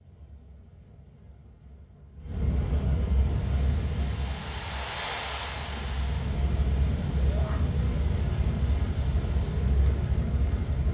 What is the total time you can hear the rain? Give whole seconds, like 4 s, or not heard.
8 s.